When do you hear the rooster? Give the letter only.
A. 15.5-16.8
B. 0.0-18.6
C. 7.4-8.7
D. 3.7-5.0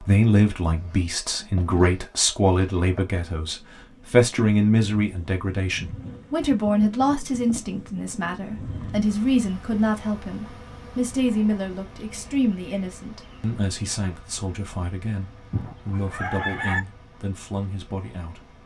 A.